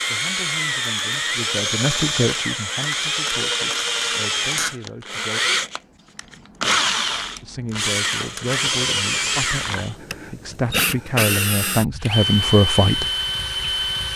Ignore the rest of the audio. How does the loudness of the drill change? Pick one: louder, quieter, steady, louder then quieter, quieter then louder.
steady.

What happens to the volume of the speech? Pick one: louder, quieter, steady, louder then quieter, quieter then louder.
louder.